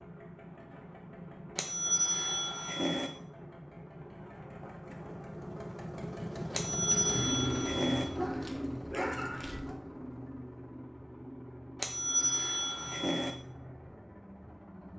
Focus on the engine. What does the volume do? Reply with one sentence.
The volume of the engine goes up, then down.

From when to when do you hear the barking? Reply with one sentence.
The barking can be heard from 8.2 to 9.8 s.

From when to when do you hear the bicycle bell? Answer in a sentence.
You can hear the bicycle bell from 1.6 to 3.1 s, from 6.5 to 8.1 s and from 11.8 to 13.3 s.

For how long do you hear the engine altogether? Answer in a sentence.
You can hear the engine for 15 seconds altogether.